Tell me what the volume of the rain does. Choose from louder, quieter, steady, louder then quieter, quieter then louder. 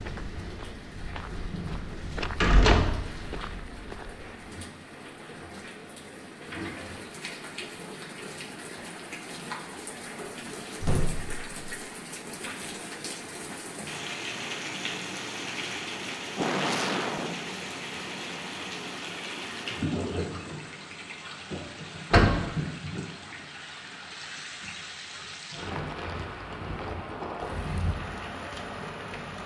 louder.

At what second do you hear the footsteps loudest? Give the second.
2 s.